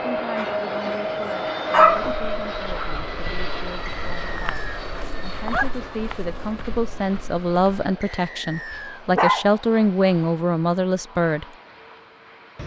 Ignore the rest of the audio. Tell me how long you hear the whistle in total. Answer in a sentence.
The whistle can be heard for 2 seconds in total.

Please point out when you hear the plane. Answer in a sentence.
The plane can be heard from 0.0 to 12.6 s.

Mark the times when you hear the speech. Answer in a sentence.
You can hear the speech from 0.1 to 11.4 s.